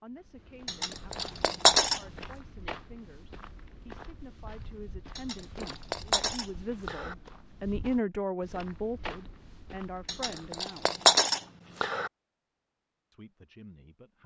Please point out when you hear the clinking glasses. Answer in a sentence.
The clinking glasses can be heard from 0.7 to 2.0 s, from 5.2 to 7.2 s and from 10.1 to 12.1 s.